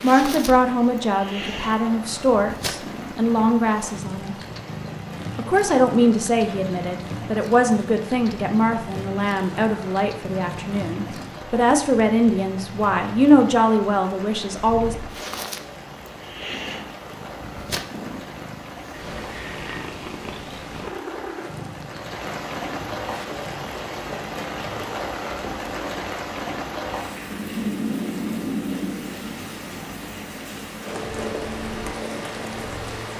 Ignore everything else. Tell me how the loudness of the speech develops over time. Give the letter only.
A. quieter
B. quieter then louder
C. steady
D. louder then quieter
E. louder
C.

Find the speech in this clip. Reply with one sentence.
The speech can be heard from 0.0 to 4.3 s and from 5.3 to 14.9 s.